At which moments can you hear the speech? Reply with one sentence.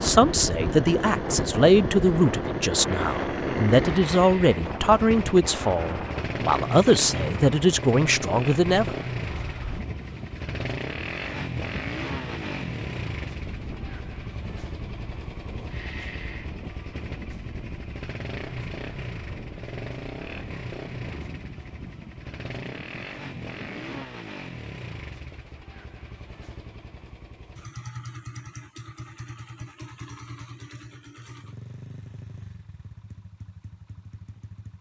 You can hear the speech from 0.0 to 8.9 s.